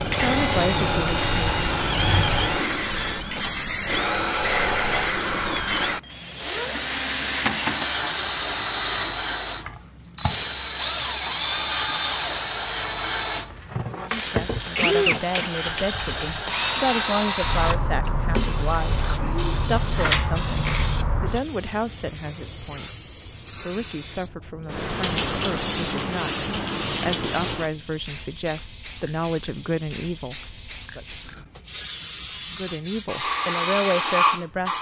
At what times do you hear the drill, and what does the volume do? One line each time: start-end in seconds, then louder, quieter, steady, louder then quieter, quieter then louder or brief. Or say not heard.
0.0-21.0 steady.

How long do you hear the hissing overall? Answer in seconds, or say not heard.
35 s.